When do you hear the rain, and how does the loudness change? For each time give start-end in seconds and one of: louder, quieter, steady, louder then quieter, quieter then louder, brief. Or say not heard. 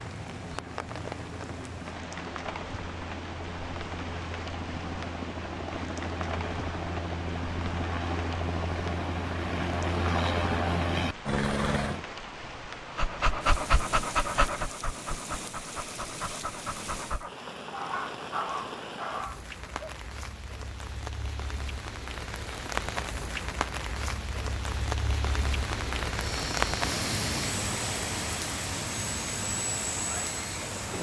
0.0-30.9 louder.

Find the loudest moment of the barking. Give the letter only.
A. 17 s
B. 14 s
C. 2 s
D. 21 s
B.